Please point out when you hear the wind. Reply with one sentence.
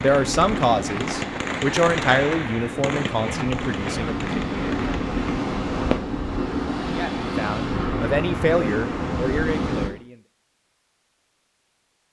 The wind can be heard from 0.0 to 9.9 s.